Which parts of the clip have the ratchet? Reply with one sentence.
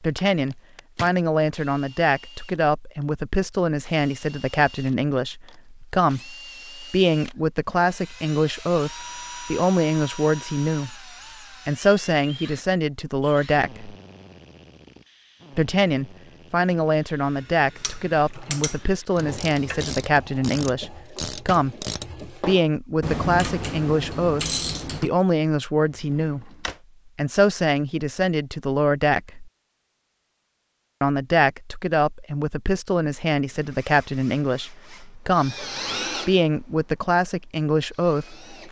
The ratchet can be heard from 17.8 to 25.1 s.